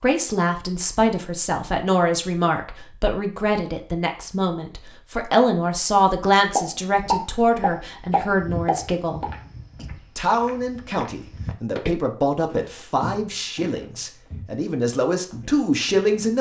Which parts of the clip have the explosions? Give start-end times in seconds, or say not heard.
6.5-9.3.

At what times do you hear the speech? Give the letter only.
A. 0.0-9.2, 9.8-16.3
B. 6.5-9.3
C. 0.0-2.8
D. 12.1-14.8
A.